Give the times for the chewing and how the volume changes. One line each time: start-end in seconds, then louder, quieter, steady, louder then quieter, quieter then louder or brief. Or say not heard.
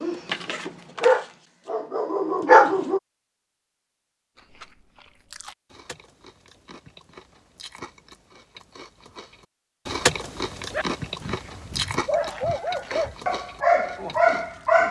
4.3-14.6 louder then quieter.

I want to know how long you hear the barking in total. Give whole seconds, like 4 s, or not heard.
7 s.